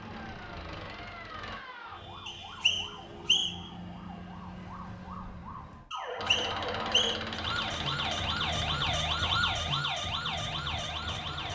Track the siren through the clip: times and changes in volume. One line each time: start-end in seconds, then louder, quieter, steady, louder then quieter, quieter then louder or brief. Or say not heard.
0.0-11.5 louder.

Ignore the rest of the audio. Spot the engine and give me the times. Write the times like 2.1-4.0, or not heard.
0.0-1.6, 6.2-11.5.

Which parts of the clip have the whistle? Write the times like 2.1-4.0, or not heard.
2.2-3.7, 5.9-7.2.